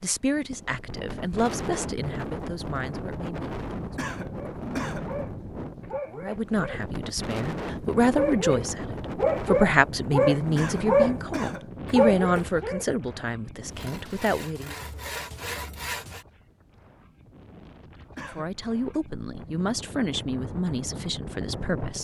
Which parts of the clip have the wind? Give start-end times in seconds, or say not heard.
0.1-21.9.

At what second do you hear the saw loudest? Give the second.
16 s.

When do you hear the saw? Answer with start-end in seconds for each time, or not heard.
13.7-16.2.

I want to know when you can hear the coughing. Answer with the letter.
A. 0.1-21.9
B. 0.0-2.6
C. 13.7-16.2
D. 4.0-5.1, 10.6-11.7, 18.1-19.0
D.